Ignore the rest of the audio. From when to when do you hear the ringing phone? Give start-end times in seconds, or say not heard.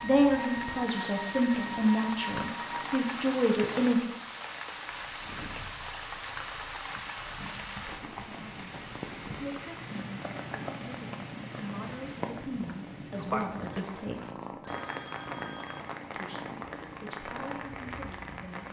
14.6-16.0.